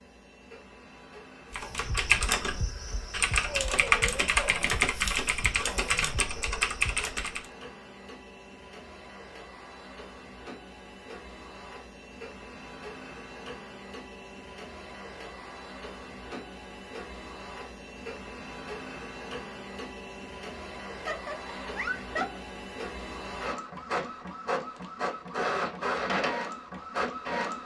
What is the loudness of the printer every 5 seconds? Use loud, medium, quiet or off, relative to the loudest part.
quiet, quiet, quiet, medium, medium, loud.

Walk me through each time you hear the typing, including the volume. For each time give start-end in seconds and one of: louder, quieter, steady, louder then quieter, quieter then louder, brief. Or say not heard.
1.5-7.5 steady.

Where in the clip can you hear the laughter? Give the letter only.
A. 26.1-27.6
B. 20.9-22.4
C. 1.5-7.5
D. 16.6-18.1
B.